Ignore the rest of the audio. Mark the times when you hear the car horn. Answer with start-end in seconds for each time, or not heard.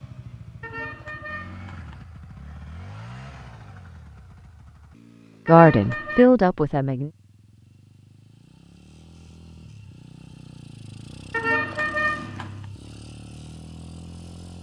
0.6-2.0, 5.5-6.3, 11.3-12.6.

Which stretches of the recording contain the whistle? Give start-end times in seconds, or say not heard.
not heard.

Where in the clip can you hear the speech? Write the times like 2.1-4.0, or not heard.
5.5-7.1.